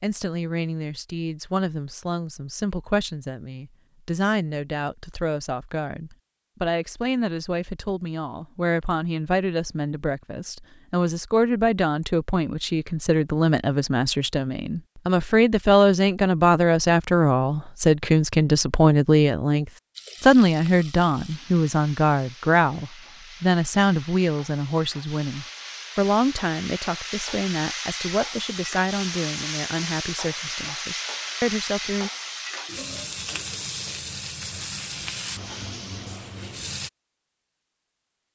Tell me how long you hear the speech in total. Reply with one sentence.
The speech can be heard for 32 seconds in total.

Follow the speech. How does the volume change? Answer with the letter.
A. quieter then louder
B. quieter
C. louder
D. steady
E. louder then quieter
E.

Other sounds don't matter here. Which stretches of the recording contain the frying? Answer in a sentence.
You can hear the frying from 19.9 to 36.9 s.